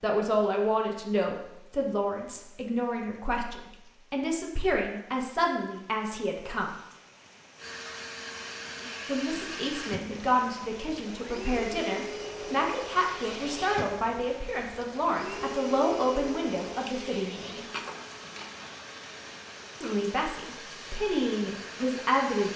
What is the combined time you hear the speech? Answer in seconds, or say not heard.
18 s.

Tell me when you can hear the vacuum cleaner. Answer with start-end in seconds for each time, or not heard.
7.5-22.5.